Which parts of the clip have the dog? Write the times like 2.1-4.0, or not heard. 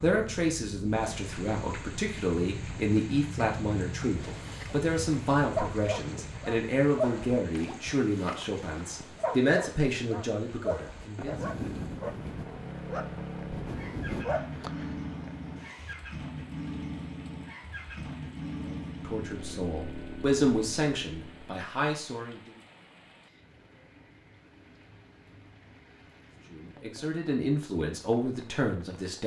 4.0-14.9.